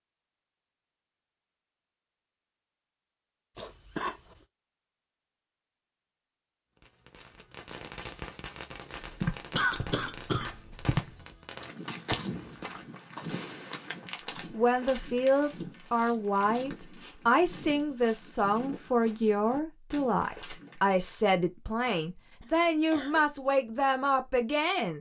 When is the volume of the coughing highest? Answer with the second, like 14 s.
10 s.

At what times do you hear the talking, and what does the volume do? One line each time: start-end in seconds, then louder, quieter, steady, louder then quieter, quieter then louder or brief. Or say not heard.
14.5-24.9 steady.